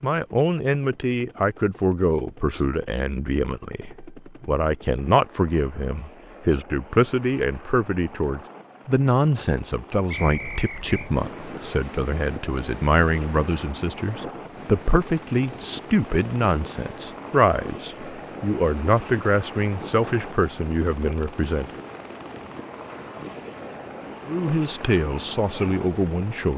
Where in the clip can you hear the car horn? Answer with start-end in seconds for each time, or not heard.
not heard.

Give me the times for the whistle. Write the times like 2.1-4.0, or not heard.
10.1-11.1.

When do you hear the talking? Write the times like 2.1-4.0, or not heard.
0.0-21.8, 24.2-26.5.